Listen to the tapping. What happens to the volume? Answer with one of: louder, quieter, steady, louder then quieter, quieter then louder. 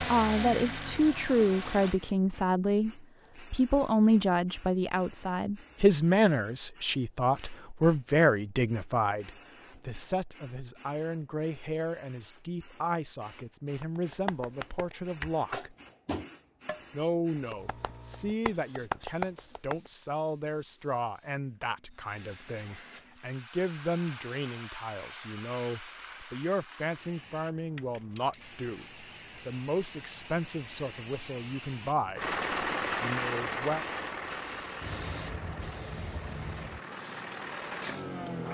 quieter then louder.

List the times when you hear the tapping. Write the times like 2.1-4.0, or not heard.
13.8-19.9.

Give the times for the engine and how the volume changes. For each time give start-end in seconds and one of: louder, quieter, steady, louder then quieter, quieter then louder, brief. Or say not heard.
0.0-2.0 brief
32.1-38.4 quieter then louder.